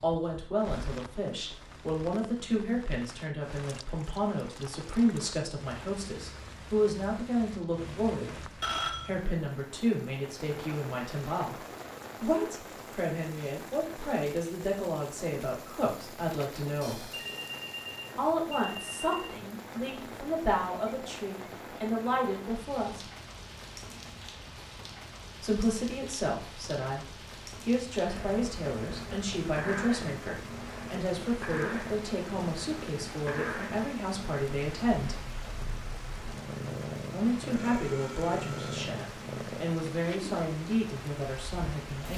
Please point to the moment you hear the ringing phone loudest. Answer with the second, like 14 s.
9 s.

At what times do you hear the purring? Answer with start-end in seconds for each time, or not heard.
28.0-42.1.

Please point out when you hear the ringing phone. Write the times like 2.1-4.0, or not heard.
7.6-9.1, 16.8-19.3, 37.5-38.9.